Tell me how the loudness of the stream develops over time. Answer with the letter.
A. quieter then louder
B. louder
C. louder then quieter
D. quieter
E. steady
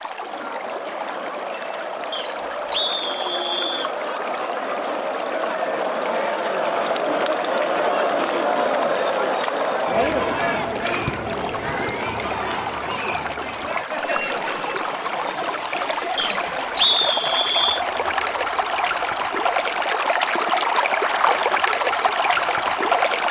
B.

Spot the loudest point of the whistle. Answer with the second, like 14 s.
17 s.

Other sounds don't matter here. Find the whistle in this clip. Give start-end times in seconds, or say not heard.
2.1-3.9, 16.1-17.8.